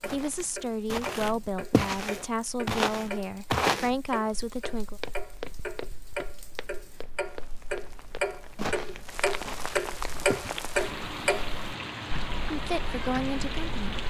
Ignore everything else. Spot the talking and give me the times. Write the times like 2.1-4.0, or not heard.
0.1-5.0, 12.5-14.0.